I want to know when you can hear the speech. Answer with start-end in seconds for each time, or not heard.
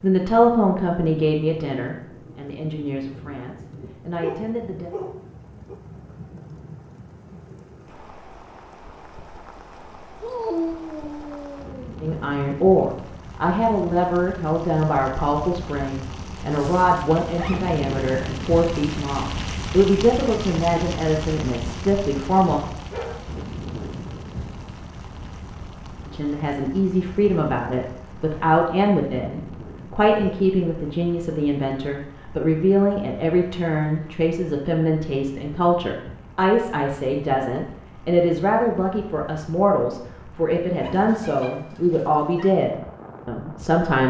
0.0-4.9, 12.0-22.6, 26.1-44.0.